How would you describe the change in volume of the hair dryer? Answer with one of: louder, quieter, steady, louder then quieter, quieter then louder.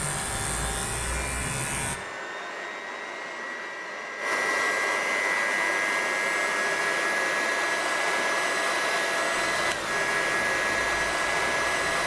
louder.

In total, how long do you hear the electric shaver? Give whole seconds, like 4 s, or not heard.
5 s.